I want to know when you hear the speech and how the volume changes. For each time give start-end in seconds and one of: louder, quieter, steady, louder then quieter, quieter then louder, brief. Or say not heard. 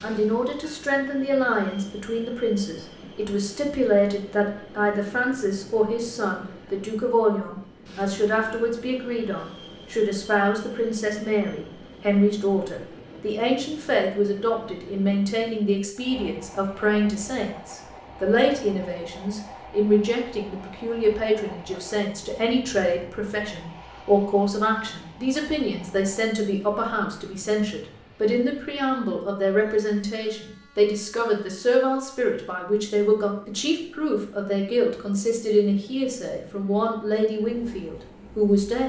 0.0-38.8 steady.